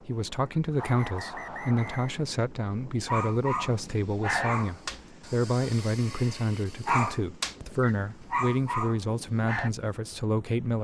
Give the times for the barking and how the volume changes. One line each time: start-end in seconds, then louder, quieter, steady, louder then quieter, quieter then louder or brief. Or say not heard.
3.0-7.5 quieter then louder
8.3-9.7 brief.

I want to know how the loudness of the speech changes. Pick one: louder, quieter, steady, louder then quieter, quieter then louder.
steady.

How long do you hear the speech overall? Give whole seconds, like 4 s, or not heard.
11 s.